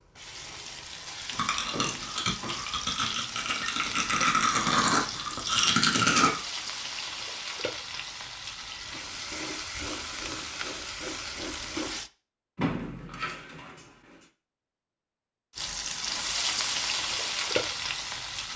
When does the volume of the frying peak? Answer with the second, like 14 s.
17 s.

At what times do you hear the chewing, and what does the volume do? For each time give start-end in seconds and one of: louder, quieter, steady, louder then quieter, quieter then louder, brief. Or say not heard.
1.4-6.4 louder.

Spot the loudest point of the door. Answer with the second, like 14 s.
13 s.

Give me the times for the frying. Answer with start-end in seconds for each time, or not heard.
0.0-12.1, 15.5-18.5.